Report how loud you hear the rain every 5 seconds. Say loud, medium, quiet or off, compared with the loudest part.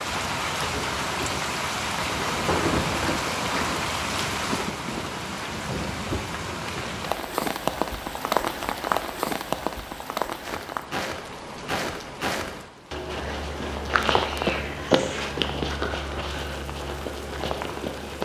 loud, loud, medium, quiet.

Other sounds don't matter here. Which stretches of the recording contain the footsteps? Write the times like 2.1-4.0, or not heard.
10.4-18.2.